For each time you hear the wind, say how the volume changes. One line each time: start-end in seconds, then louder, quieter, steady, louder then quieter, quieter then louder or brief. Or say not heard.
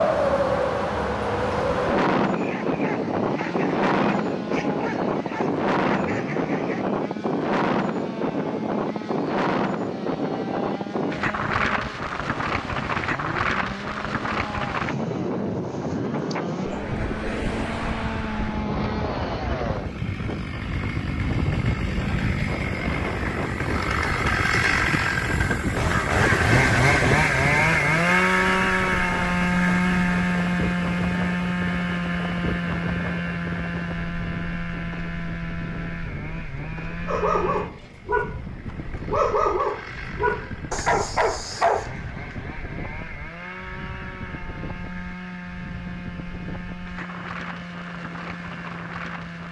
0.0-49.4 quieter.